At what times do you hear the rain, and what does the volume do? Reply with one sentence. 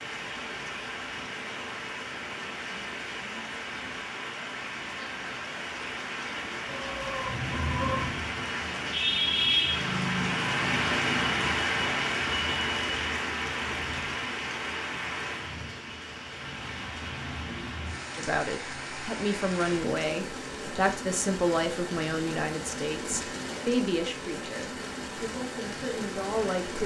The rain can be heard from 0.0 to 26.8 s, getting louder then quieter.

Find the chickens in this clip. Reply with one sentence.
You can hear the chickens from 6.7 to 8.2 s.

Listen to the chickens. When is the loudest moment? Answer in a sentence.
The loudest moment of the chickens is at 8 seconds.